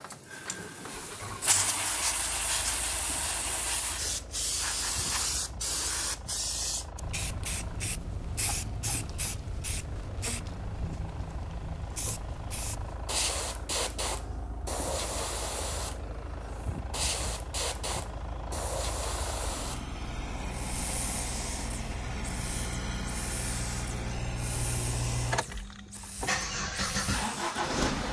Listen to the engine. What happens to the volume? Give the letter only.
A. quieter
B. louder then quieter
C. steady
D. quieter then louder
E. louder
E.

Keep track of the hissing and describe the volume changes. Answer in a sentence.
The volume of the hissing goes down.